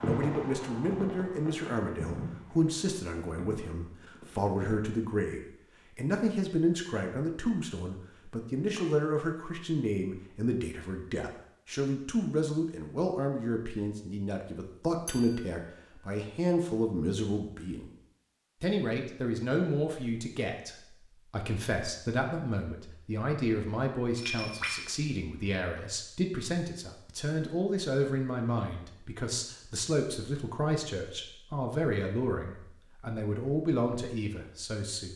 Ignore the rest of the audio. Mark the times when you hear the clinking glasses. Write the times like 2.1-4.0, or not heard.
15.1-15.7, 24.1-24.9.